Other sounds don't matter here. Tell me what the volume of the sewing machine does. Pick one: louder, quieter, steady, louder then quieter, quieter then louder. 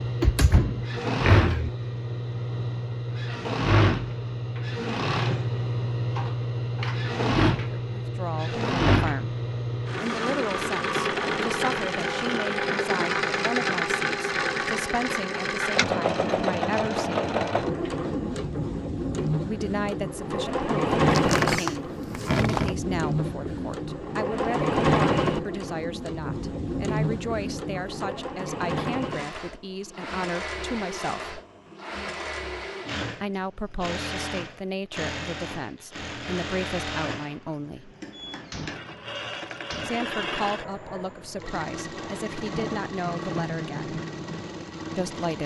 quieter.